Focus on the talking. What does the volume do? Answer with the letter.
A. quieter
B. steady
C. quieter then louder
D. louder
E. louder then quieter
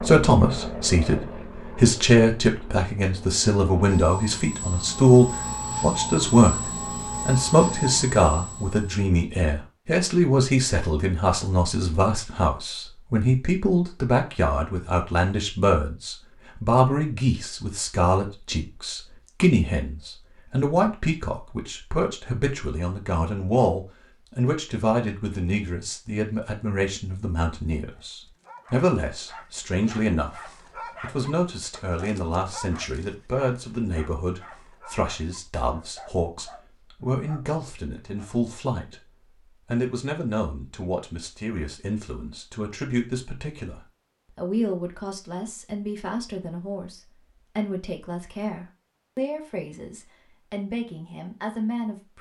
A.